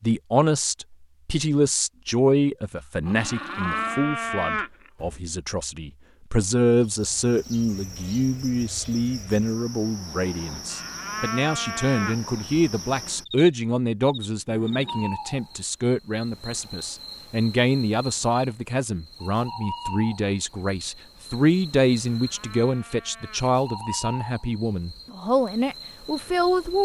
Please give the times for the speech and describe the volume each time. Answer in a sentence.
You can hear the speech from 0.0 to 26.7 s, at a steady volume.